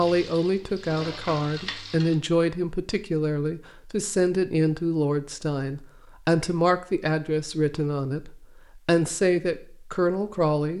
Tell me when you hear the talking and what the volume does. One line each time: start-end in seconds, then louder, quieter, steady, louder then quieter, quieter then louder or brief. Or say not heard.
0.0-10.7 steady.